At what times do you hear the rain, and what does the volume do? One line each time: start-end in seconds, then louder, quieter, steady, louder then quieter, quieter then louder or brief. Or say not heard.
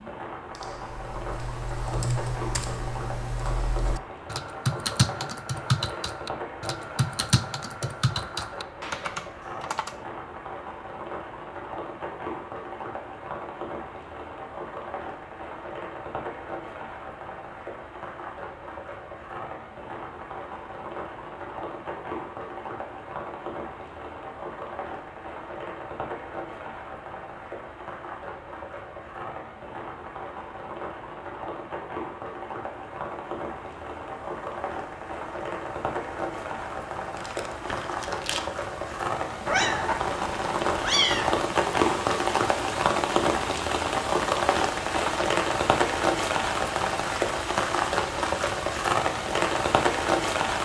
0.0-50.6 louder.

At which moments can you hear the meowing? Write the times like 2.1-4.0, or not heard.
39.5-41.5.